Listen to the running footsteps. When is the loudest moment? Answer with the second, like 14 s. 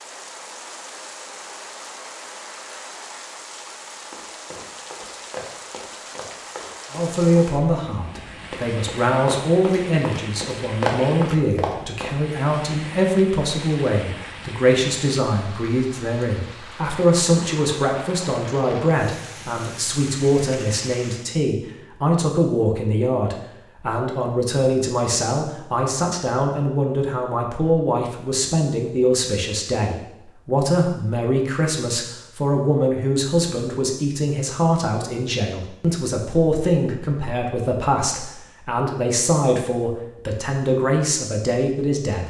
11 s.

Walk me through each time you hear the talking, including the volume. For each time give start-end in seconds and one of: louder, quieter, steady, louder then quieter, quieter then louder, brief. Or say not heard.
6.9-42.2 steady.